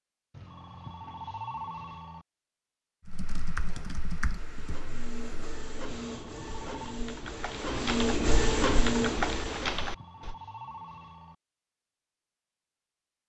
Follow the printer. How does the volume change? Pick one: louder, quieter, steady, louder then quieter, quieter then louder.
louder.